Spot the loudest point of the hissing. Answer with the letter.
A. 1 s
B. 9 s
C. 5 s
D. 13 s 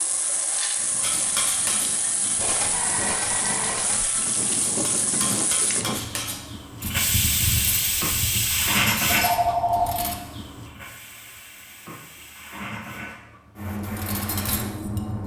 B.